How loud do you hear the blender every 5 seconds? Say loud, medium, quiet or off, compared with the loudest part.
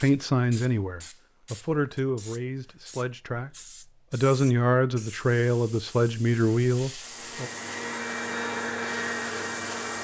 off, loud.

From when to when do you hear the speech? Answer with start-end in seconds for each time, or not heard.
0.0-7.5.